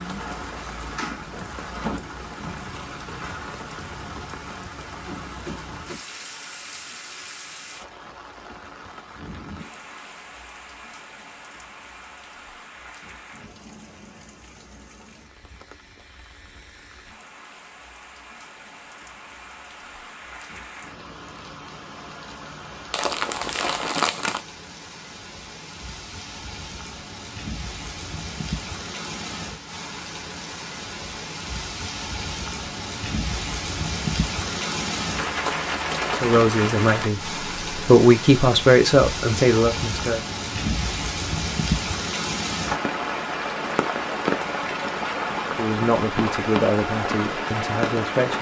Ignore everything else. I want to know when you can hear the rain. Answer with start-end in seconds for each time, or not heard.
0.0-48.3.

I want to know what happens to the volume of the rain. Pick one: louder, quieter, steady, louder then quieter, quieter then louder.
quieter then louder.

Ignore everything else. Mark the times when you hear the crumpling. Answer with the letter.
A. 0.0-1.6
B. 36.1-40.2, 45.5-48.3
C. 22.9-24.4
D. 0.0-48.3
C.